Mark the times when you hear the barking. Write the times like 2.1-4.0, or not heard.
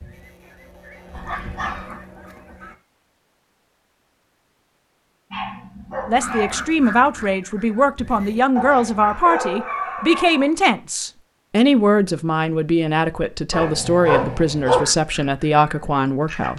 1.1-1.9, 5.3-6.7, 8.6-10.5, 13.5-14.8.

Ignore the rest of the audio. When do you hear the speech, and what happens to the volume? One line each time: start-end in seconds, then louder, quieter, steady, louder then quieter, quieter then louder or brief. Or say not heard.
6.0-16.5 steady.